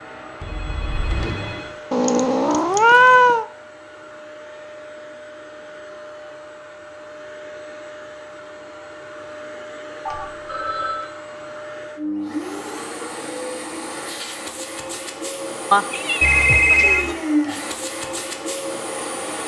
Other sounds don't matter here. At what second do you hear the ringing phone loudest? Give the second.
17 s.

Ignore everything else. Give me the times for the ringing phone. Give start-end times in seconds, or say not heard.
0.4-1.7, 10.1-11.1, 16.2-17.1.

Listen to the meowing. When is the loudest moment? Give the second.
3 s.